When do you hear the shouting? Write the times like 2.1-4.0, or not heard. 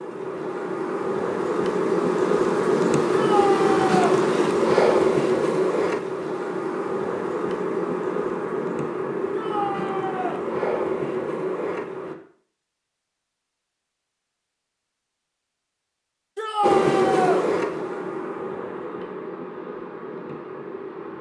3.1-4.2, 9.3-10.4, 16.4-17.4.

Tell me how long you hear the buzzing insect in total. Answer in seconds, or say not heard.
17 s.